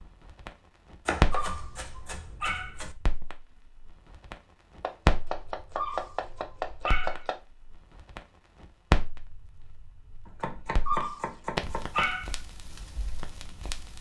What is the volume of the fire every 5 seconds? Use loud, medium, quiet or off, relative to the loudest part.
loud, loud, medium.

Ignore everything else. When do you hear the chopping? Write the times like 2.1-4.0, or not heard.
1.1-3.0, 4.8-7.4, 10.2-12.2.